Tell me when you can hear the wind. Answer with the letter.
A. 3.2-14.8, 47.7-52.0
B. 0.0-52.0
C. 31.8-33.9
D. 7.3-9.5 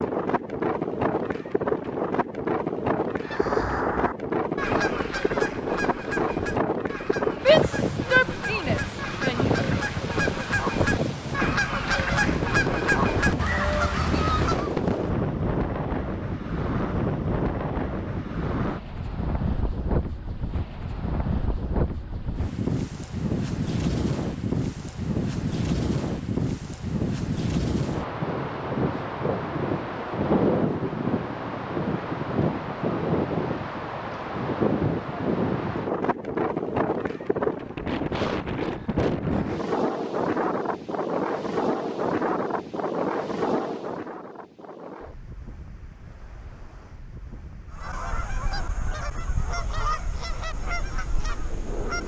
B.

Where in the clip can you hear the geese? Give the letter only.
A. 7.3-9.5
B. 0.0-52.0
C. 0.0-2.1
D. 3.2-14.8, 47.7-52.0
D.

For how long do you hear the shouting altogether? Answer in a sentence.
The shouting can be heard for 2 seconds in total.